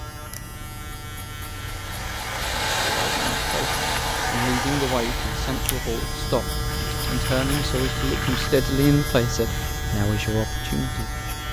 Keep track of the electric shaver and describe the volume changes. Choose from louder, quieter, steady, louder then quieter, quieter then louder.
louder.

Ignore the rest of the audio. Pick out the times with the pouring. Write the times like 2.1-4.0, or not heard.
6.7-8.5.